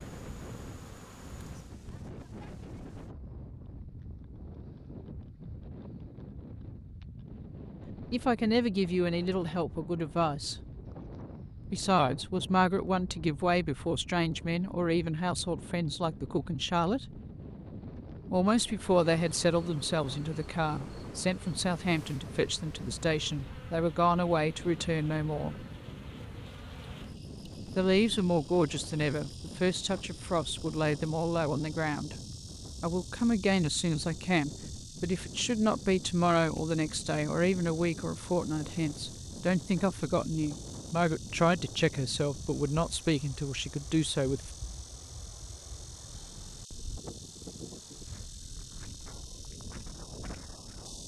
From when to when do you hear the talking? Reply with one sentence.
The talking can be heard from 8.1 to 10.6 s, from 11.7 to 17.1 s, from 18.3 to 25.6 s, from 27.6 to 32.1 s and from 32.8 to 44.5 s.